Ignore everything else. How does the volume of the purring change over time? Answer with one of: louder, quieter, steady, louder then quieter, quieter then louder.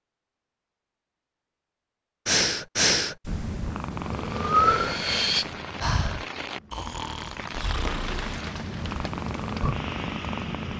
quieter then louder.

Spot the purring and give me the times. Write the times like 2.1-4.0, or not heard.
3.2-10.7.